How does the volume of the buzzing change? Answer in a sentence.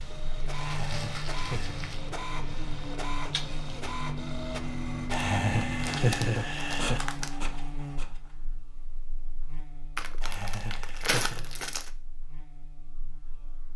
The loudness of the buzzing goes down.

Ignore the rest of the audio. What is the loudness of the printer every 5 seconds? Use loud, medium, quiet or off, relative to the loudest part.
loud, loud, off.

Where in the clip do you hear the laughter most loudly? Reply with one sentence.
The volume of the laughter peaks at 6 seconds.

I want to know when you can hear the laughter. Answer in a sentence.
You can hear the laughter from 0.6 to 1.8 s, from 5.1 to 7.0 s and from 10.2 to 11.5 s.